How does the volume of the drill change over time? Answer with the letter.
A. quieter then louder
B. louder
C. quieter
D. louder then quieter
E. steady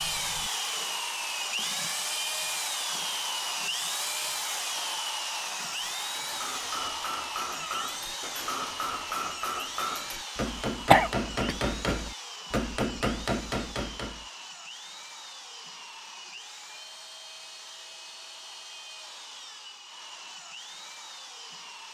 C.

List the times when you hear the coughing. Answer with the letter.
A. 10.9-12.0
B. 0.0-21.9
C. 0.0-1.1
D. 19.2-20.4
A.